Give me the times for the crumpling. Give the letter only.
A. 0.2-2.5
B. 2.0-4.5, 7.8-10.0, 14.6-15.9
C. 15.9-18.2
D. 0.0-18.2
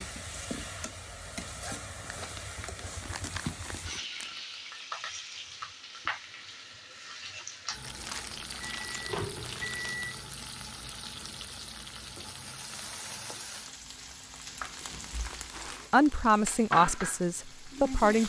B.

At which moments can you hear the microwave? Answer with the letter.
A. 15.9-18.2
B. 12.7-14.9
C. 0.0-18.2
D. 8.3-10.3
D.